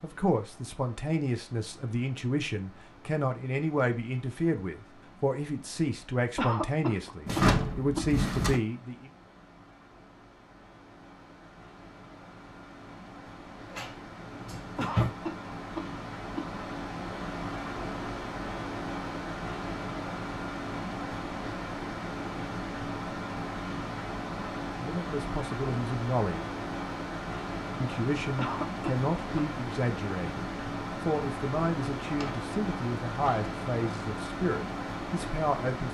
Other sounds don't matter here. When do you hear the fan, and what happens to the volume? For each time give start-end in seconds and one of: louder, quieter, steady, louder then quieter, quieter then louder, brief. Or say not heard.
0.0-35.8 louder.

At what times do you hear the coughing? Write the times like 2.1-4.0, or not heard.
6.3-8.1, 14.8-16.5, 28.4-29.6.